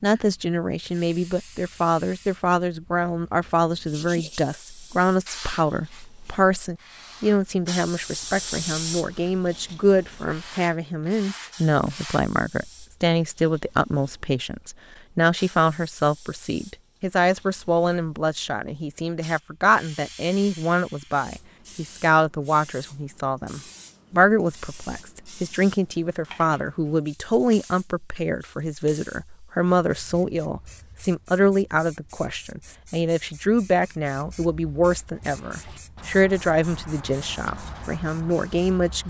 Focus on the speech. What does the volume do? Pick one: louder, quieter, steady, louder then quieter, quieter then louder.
steady.